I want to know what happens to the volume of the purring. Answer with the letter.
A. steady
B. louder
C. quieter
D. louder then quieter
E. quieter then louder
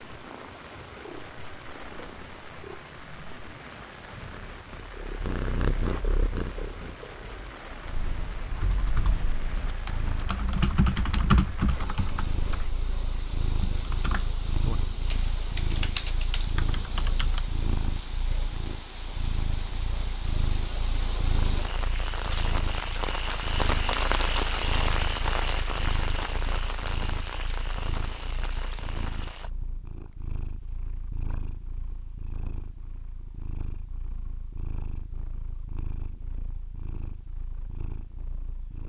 C.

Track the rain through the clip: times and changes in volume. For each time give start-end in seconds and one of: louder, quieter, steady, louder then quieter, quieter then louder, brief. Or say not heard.
0.0-29.5 louder.